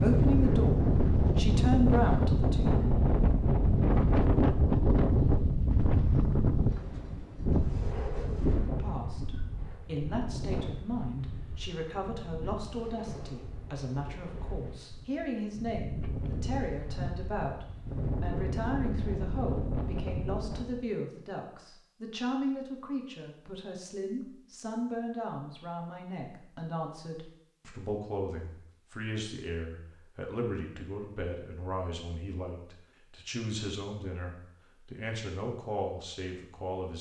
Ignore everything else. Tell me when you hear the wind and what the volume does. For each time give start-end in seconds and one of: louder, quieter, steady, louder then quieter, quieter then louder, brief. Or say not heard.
0.0-20.9 quieter then louder.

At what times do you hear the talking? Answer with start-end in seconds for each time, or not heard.
0.0-3.0, 8.7-36.9.